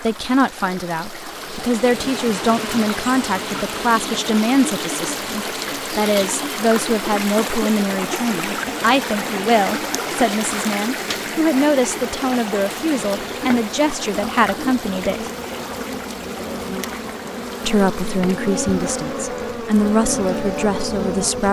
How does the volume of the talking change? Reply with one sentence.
The loudness of the talking stays about the same.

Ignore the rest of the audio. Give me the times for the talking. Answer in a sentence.
The talking can be heard from 0.0 to 15.3 s and from 17.6 to 21.4 s.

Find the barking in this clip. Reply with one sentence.
You can't hear the barking here.